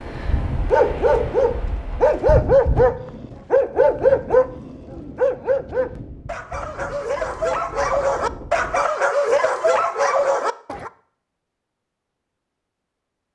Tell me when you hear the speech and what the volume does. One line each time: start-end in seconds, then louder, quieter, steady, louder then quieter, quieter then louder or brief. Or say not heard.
not heard.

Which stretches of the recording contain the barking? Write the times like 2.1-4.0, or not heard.
0.7-10.9.